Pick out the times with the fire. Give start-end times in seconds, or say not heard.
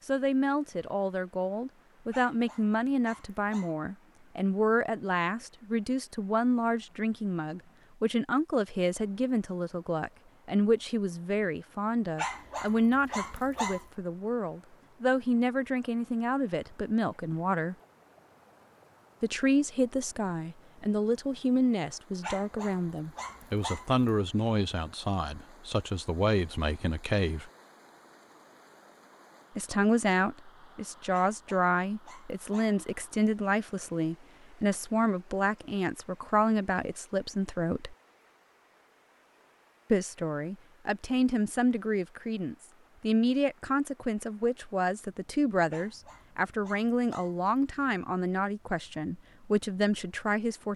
not heard.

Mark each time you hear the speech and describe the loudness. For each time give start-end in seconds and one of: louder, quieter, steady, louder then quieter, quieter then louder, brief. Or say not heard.
0.1-17.8 steady
19.2-27.5 steady
29.6-38.0 steady
39.9-50.7 steady.